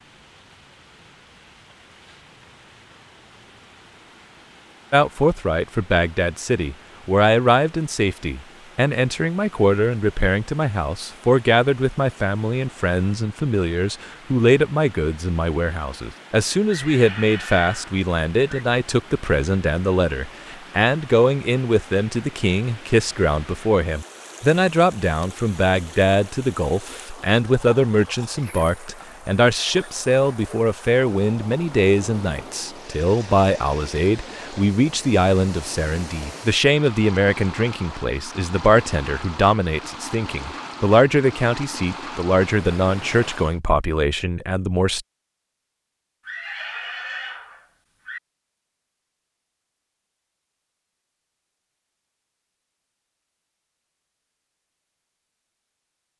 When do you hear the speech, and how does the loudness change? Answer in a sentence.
The speech can be heard from 4.9 to 45.0 s, at a steady volume.